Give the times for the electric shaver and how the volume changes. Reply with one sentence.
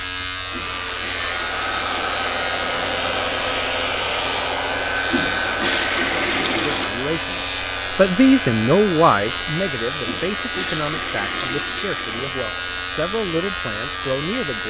The electric shaver can be heard from 0.0 to 14.6 s, at a steady volume.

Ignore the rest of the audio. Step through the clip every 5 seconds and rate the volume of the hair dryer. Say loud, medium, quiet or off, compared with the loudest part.
loud, loud, quiet.